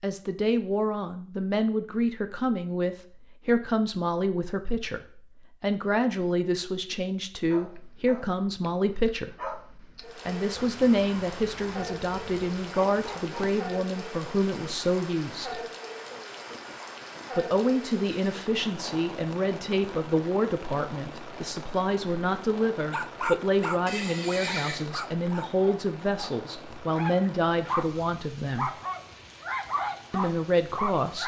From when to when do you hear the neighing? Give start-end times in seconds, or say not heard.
23.9-24.9.